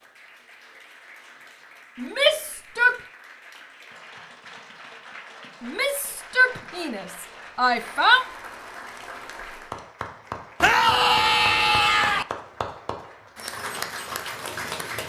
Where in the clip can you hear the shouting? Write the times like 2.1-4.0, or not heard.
1.9-3.0, 5.6-8.2, 10.6-12.2.